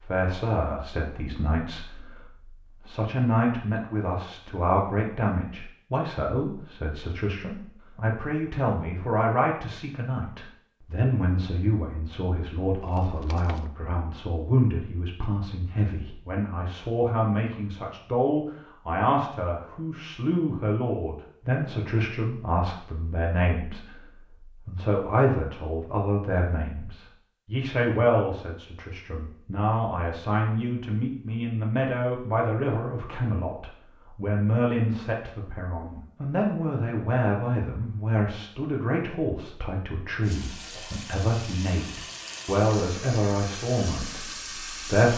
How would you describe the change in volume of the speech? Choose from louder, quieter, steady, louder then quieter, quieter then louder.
steady.